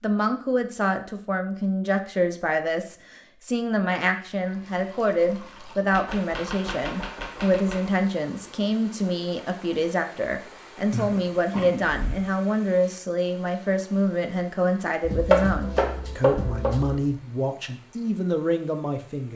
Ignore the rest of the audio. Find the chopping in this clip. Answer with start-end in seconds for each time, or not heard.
5.9-7.9, 15.0-16.9.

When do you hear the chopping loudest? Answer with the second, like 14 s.
15 s.